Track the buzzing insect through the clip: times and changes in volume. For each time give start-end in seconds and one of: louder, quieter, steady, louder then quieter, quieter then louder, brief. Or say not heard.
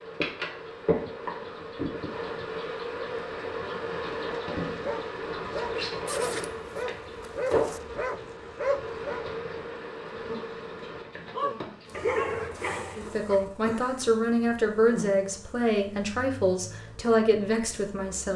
0.0-18.3 quieter.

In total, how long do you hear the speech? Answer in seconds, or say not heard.
5 s.